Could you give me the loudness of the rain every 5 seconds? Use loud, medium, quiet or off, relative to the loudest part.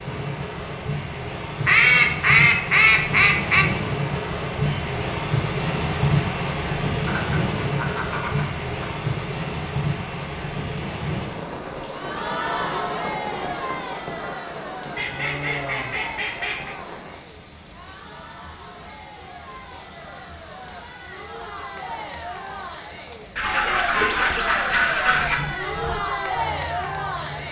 loud, loud, medium, quiet, quiet, quiet.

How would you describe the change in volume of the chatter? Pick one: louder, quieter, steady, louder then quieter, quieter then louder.
quieter then louder.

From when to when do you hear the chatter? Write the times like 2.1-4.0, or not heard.
11.9-27.4.